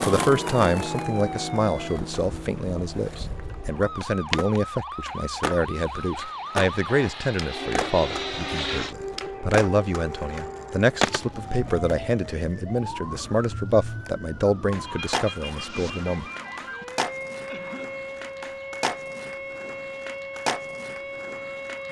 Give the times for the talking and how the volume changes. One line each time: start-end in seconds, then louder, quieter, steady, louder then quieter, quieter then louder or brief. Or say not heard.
0.0-16.2 steady.